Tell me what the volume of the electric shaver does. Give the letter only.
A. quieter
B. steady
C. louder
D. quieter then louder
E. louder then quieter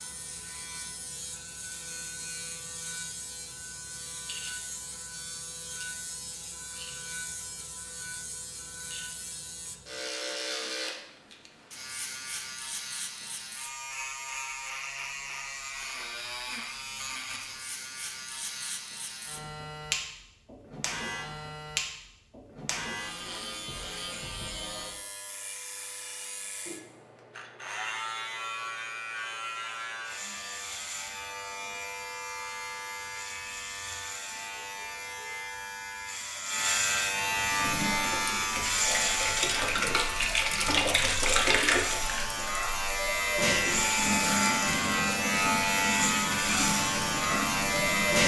C.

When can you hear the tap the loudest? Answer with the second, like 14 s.
41 s.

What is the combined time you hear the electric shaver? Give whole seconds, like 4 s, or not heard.
48 s.